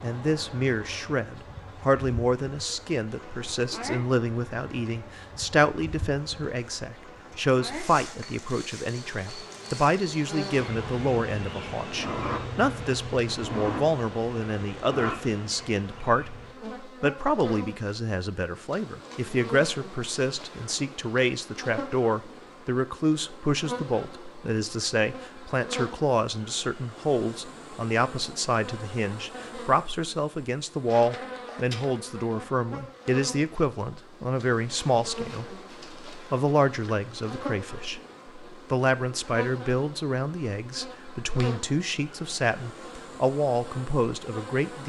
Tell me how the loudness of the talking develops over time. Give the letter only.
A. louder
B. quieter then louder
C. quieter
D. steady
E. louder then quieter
D.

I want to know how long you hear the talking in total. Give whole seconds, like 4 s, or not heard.
45 s.